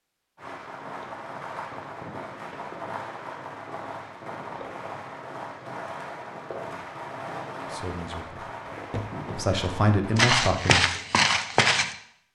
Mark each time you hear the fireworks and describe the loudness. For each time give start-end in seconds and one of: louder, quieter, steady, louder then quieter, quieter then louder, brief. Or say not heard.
0.3-10.3 steady.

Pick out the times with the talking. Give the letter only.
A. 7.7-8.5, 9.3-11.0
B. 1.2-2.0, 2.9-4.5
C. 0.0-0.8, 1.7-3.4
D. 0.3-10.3
A.